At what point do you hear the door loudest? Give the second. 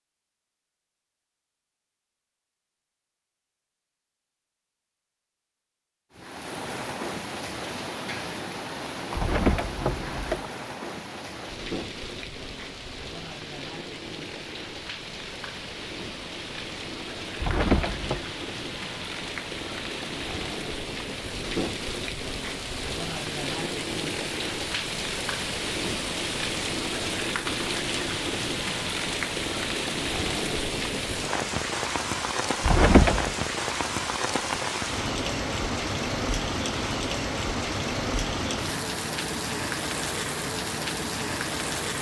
33 s.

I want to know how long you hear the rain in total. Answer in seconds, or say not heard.
36 s.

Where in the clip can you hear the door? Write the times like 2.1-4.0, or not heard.
9.2-10.5, 17.4-18.2, 32.6-33.4.